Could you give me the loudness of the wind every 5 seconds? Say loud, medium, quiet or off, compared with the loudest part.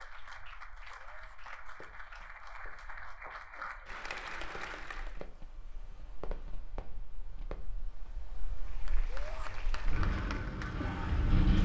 quiet, quiet, loud.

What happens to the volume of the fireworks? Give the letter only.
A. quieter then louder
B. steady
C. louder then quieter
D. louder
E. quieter
D.